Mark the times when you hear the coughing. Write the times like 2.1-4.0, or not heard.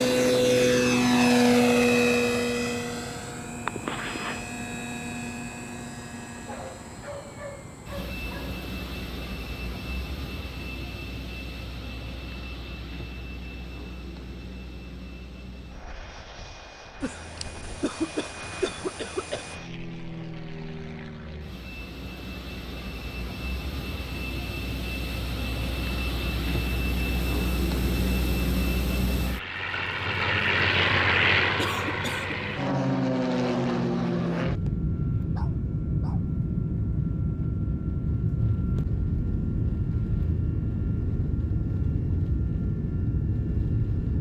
3.6-4.4, 17.0-19.6, 31.6-32.4.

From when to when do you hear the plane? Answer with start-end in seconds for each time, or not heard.
0.0-44.1.